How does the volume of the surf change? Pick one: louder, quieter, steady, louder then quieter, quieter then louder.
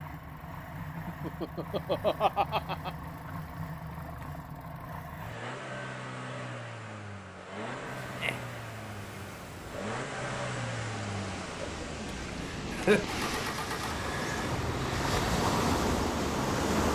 louder.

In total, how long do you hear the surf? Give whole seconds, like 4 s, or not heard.
9 s.